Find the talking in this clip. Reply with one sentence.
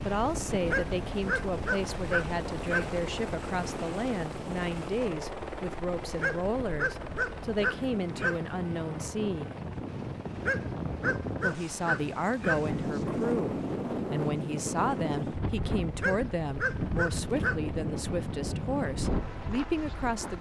You can hear the talking from 0.0 to 9.5 s and from 11.4 to 20.3 s.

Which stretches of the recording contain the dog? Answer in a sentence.
You can hear the dog from 0.7 to 3.0 s, from 6.2 to 8.4 s, from 10.4 to 12.8 s and from 15.9 to 17.6 s.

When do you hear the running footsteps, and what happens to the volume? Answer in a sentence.
You can't hear the running footsteps here.